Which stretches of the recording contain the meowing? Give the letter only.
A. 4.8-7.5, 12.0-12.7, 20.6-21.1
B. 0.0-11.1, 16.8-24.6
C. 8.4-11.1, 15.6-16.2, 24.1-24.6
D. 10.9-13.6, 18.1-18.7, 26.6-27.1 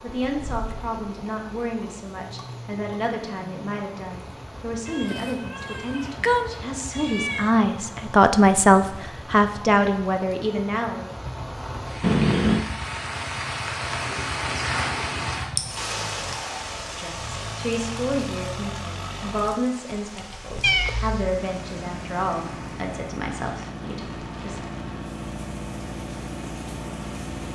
A.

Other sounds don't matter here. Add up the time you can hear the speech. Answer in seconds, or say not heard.
19 s.